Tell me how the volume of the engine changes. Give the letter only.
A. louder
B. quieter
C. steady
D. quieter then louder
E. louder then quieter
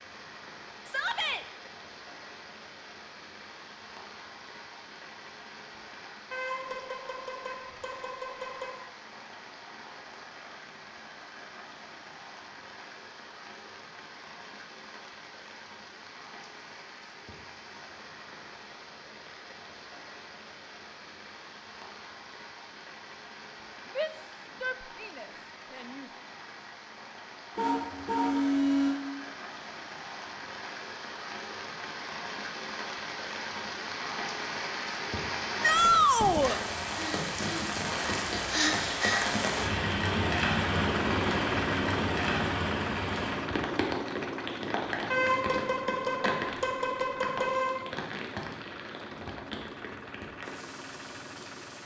B.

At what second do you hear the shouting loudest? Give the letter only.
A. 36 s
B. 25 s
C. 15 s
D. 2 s
A.